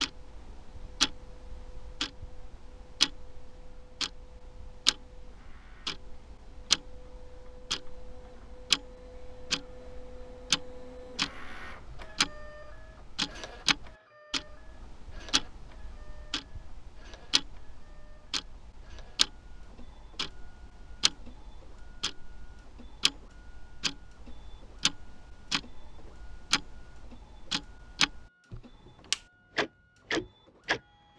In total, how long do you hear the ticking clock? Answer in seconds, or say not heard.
31 s.